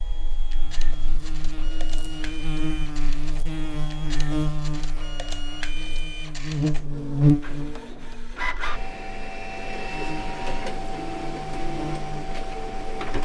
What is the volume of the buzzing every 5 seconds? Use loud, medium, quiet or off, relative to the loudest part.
medium, loud, quiet.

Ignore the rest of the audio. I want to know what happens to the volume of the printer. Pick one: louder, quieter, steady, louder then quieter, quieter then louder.
louder.